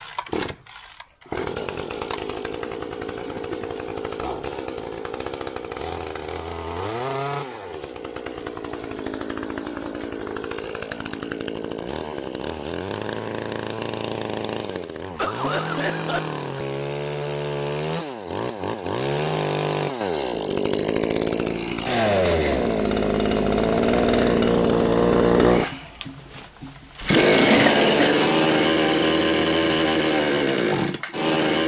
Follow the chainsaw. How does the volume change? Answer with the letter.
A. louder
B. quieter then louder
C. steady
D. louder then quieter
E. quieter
A.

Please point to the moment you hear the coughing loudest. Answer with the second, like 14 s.
28 s.